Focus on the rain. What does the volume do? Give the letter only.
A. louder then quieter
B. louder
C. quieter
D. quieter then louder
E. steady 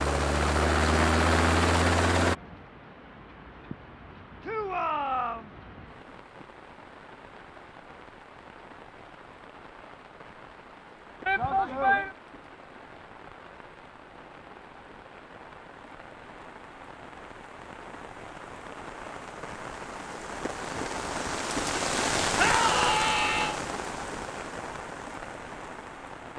B.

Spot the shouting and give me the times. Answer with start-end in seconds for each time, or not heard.
4.4-5.5, 11.2-12.1, 22.4-23.6.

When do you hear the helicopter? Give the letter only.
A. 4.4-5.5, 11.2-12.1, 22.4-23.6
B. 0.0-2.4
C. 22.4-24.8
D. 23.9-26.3
B.